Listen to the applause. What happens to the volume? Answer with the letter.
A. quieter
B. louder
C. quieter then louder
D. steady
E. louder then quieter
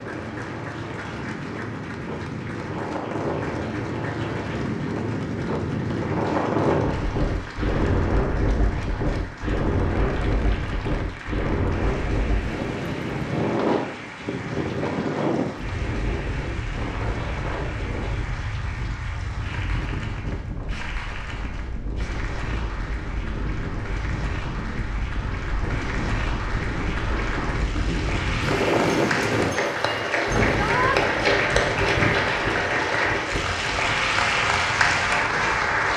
B.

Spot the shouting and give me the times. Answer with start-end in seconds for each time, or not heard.
30.5-31.0.